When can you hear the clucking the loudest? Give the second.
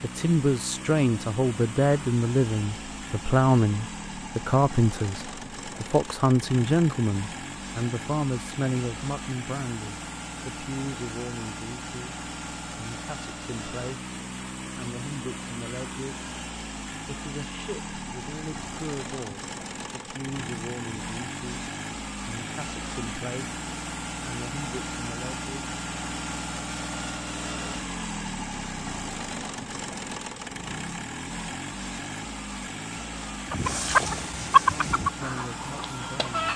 35 s.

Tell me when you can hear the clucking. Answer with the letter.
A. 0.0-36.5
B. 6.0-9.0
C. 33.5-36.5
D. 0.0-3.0
C.